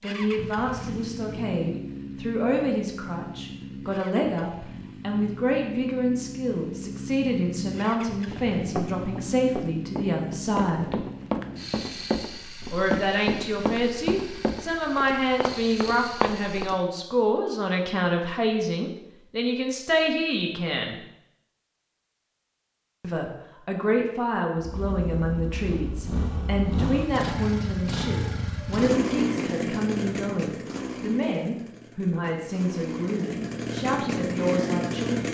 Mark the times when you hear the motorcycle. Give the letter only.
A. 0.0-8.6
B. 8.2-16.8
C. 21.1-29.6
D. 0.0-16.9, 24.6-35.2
D.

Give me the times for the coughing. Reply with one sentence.
You can't hear the coughing here.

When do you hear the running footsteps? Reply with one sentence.
The running footsteps can be heard from 8.2 to 16.8 s.